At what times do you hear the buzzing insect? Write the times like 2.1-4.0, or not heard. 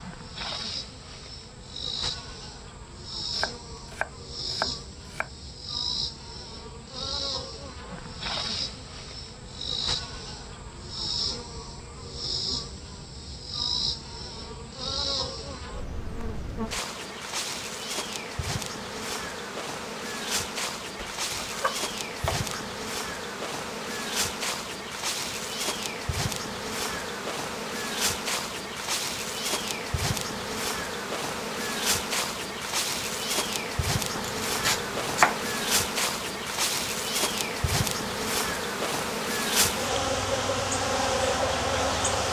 0.0-42.2.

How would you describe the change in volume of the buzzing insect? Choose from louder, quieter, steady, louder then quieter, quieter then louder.
louder.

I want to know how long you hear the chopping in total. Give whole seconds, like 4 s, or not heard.
5 s.